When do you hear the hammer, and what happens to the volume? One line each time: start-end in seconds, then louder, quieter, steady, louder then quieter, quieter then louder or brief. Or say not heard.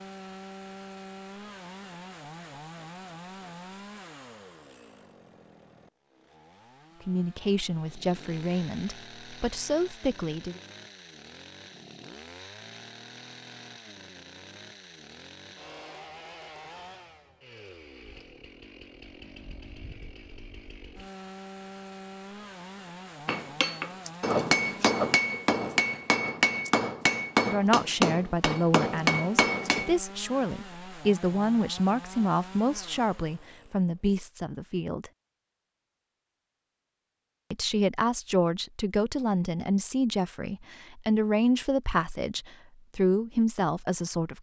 23.2-29.9 steady.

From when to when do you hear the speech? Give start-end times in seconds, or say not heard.
7.0-10.6, 27.4-35.1, 37.5-44.3.